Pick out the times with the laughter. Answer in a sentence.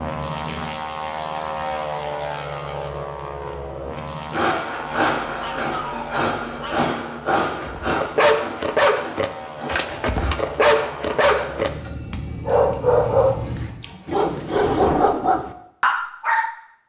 The laughter can't be heard in this clip.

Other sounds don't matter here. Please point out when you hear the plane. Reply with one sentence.
You can hear the plane from 0.0 to 13.7 s.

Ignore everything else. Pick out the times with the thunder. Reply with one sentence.
You can hear the thunder from 14.5 to 15.1 s.